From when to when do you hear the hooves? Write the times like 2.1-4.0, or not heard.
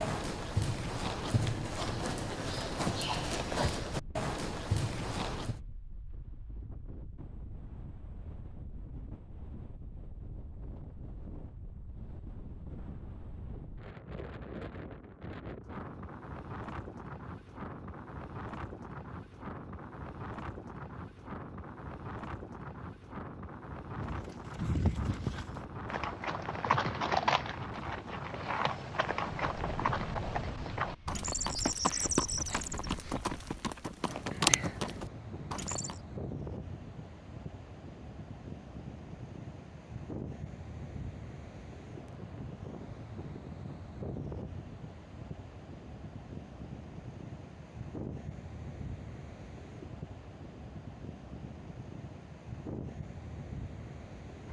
0.0-5.6, 23.9-36.0.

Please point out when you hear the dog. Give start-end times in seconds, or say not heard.
not heard.